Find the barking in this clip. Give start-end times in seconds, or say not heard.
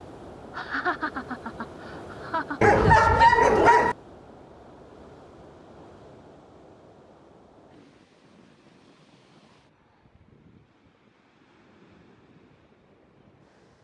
2.6-4.0.